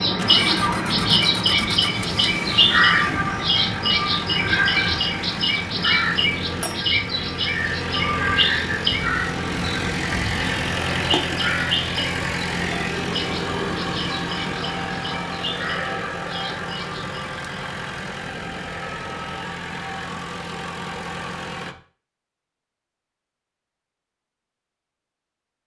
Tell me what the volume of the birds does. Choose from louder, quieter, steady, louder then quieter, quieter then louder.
quieter.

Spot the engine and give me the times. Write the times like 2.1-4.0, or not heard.
0.0-21.8.